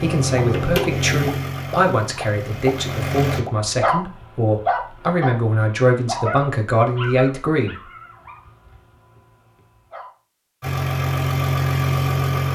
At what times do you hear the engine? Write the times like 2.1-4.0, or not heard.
0.0-3.4, 10.6-12.5.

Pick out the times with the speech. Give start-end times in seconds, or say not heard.
0.0-7.8.